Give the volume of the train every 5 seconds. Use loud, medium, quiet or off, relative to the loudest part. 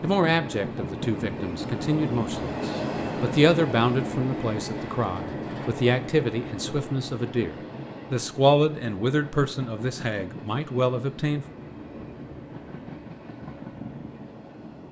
loud, medium, medium.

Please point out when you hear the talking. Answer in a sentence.
You can hear the talking from 0.0 to 11.4 s.